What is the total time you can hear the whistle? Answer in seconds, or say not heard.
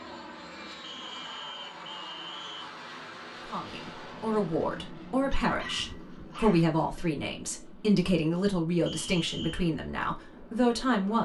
3 s.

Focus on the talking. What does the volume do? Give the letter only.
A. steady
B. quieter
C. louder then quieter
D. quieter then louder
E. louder
A.